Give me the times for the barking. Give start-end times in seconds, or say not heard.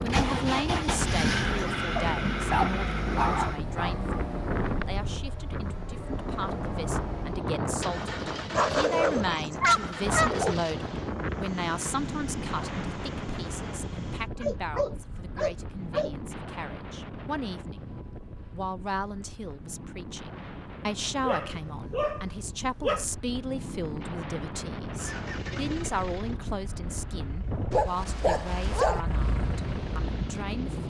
1.9-4.2, 8.5-10.6, 14.4-16.1, 21.2-23.1, 27.7-29.0.